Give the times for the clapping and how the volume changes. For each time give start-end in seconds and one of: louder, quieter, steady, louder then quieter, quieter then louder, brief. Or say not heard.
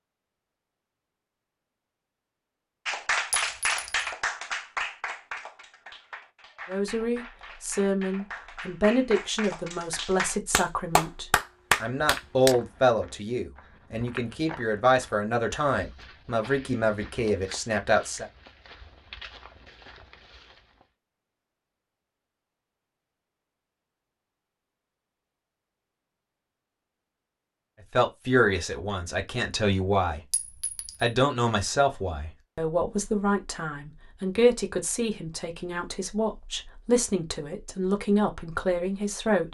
2.9-12.6 quieter then louder.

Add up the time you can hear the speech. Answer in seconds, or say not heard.
22 s.